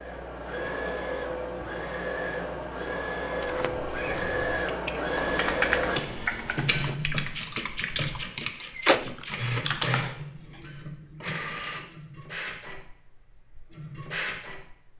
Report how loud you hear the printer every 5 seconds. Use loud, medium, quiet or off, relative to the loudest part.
loud, loud, medium.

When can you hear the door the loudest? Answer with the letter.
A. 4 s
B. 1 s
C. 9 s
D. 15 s
C.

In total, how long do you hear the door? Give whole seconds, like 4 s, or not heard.
2 s.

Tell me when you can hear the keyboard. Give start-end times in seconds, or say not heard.
4.1-10.6.